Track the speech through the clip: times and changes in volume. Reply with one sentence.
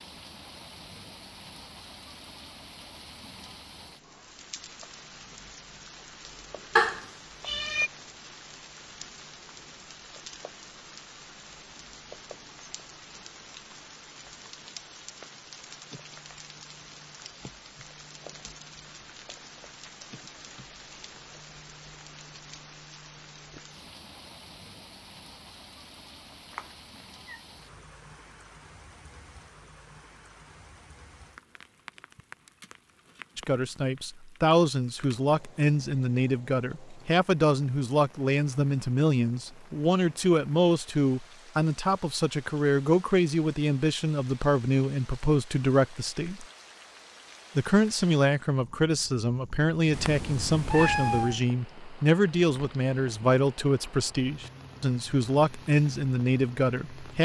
You can hear the speech from 33.4 to 46.5 s, at a steady volume; and from 47.5 to 57.2 s, at a steady volume.